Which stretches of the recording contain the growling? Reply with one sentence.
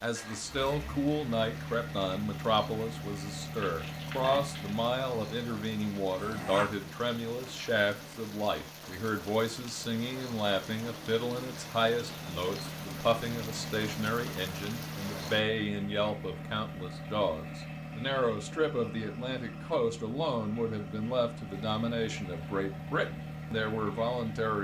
The growling can be heard from 6.2 to 6.8 s.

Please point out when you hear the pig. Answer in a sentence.
The pig can be heard from 3.5 to 4.8 s.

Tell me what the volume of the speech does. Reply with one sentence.
The loudness of the speech stays about the same.